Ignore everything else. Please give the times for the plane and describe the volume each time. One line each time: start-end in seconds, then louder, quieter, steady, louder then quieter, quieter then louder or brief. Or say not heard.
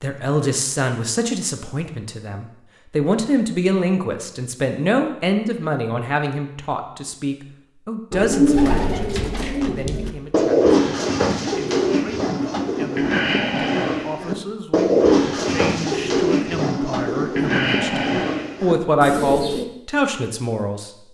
not heard.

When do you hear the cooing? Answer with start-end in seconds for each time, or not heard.
8.1-19.6.